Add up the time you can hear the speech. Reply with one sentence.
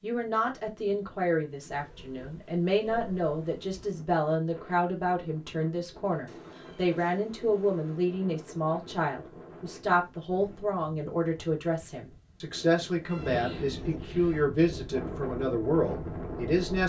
You can hear the speech for 17 seconds altogether.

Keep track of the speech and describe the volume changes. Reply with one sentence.
The volume of the speech stays about the same.